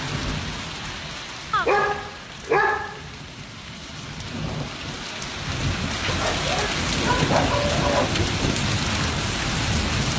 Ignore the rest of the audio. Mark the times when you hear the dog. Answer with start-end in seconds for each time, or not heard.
1.5-3.1, 6.0-8.1.